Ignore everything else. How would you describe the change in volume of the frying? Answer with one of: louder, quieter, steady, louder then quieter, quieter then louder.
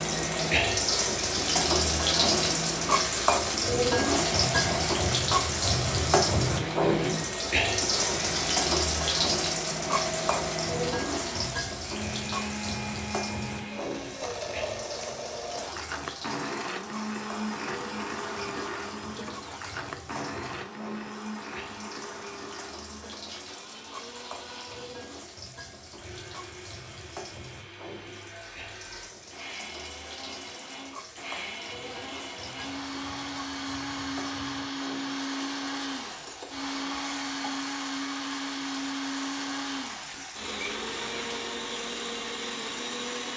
quieter.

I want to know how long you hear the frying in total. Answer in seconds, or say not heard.
43 s.